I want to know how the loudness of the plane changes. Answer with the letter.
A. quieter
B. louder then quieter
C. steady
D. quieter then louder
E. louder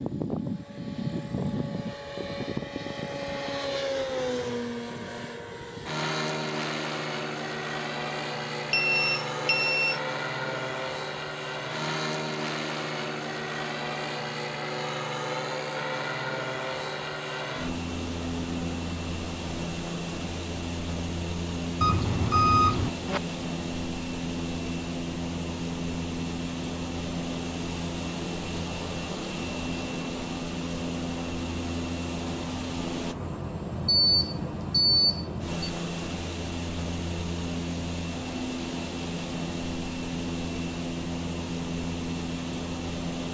C.